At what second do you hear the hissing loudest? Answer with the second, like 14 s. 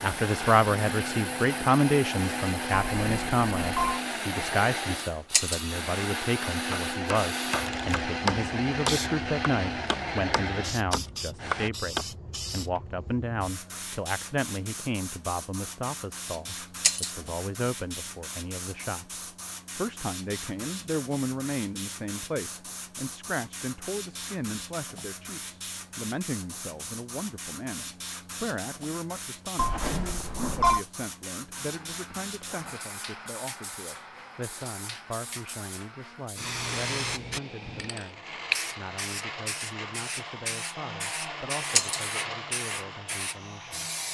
39 s.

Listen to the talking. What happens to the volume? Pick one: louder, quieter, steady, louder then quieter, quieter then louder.
quieter.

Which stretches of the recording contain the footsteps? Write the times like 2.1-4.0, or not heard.
not heard.